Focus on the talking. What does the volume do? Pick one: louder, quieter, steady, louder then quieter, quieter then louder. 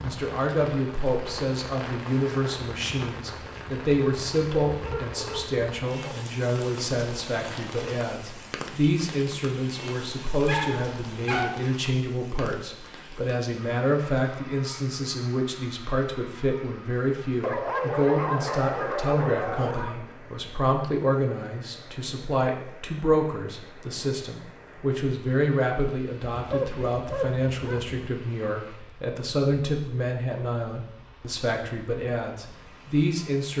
steady.